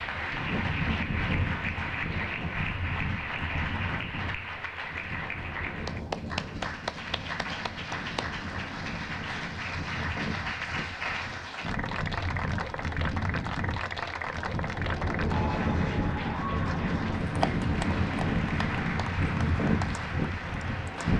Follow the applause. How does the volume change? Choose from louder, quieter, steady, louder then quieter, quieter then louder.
steady.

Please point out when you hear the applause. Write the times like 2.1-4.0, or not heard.
0.0-21.1.